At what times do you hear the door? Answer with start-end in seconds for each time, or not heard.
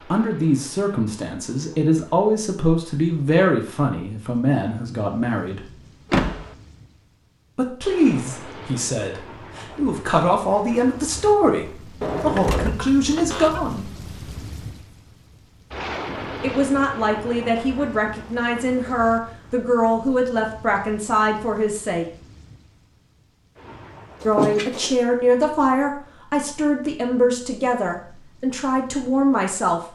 6.1-6.5, 12.0-13.7, 24.2-24.9.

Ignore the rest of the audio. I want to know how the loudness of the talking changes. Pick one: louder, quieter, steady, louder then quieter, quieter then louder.
steady.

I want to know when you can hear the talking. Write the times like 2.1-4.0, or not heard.
0.1-5.7, 7.5-13.9, 16.4-22.1, 24.2-29.8.